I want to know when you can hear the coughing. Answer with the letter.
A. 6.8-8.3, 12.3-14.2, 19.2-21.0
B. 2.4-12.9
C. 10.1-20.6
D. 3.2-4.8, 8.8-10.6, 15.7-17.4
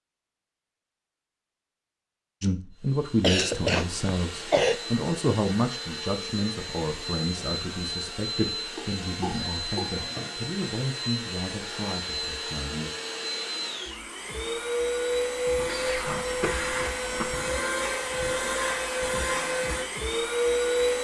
D.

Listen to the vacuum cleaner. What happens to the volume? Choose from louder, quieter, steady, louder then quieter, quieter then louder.
louder.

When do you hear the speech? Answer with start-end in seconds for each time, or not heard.
2.4-12.9.